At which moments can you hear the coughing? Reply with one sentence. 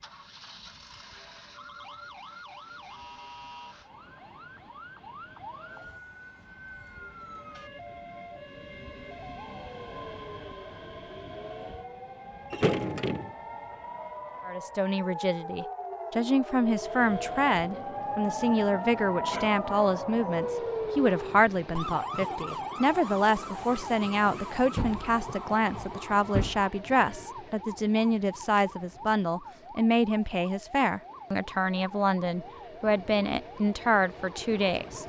You can't hear the coughing here.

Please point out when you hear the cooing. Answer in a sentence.
You can't hear the cooing here.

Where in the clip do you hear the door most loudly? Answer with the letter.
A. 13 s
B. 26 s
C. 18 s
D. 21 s
A.